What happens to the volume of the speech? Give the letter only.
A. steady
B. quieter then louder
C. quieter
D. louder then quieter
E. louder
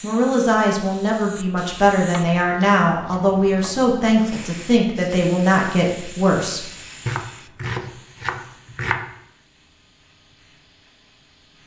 A.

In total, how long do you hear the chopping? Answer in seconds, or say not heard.
4 s.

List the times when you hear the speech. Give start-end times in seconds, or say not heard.
0.0-6.6.